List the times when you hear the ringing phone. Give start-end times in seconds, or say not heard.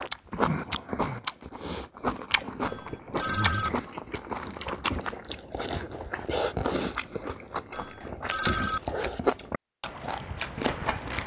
2.6-3.7, 7.7-8.8.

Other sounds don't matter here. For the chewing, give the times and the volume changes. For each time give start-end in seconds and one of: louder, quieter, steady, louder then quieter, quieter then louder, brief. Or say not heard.
0.0-11.2 steady.